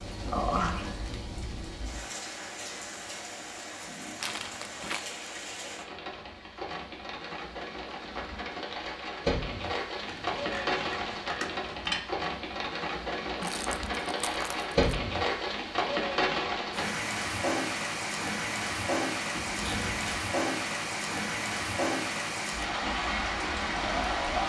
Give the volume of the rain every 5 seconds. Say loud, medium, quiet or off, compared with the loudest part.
medium, medium, loud, loud, loud.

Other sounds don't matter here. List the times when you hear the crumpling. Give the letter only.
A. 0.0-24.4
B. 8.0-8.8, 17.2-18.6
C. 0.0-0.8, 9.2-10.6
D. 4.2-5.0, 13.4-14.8
D.